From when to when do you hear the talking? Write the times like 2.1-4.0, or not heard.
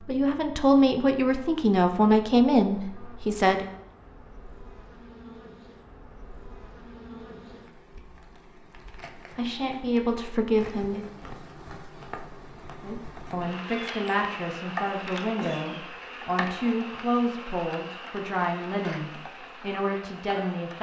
0.0-3.6, 9.3-11.1, 12.8-20.7.